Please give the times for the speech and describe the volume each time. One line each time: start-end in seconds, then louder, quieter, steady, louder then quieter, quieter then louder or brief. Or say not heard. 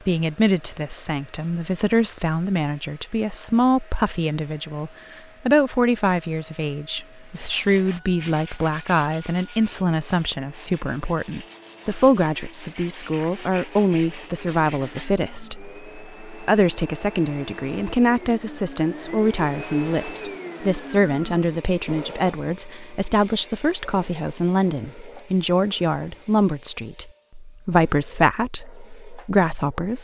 0.1-30.0 steady.